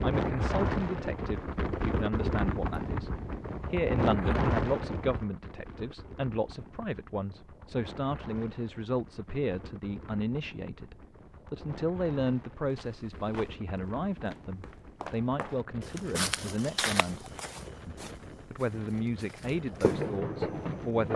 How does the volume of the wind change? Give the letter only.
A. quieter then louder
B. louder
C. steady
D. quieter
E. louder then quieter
D.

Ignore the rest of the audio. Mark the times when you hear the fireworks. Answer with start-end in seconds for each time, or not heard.
19.6-21.1.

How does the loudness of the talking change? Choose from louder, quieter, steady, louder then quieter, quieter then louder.
steady.